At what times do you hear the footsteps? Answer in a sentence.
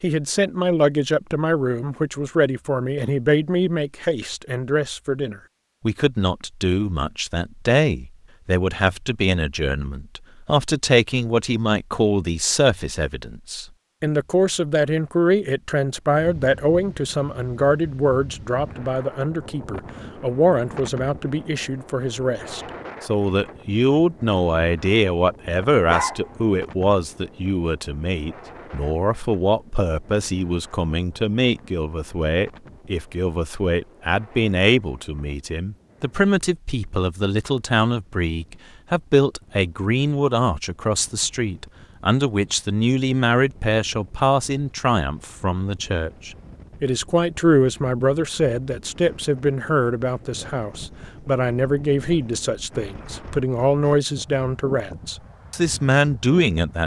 The footsteps can't be heard in this clip.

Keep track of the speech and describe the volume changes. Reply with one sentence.
The loudness of the speech stays about the same.